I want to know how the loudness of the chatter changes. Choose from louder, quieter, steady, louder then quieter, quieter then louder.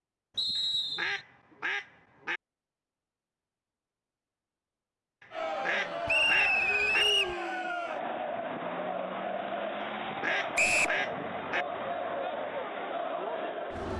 steady.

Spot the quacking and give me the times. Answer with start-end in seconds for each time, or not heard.
0.6-2.4, 5.2-7.0, 9.8-11.7.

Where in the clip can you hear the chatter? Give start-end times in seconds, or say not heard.
5.3-13.9.